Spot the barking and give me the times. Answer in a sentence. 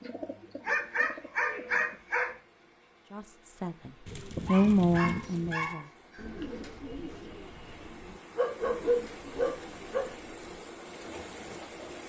The barking can be heard from 0.7 to 2.4 s, from 4.5 to 6.5 s and from 8.3 to 10.2 s.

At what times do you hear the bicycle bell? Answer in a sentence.
The bicycle bell can't be heard in this clip.